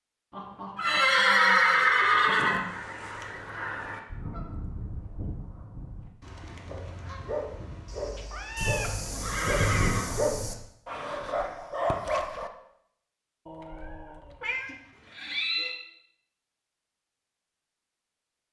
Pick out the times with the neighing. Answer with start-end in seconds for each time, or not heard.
0.8-2.6, 8.6-10.6, 14.4-15.8.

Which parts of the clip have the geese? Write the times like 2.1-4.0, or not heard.
1.9-8.2.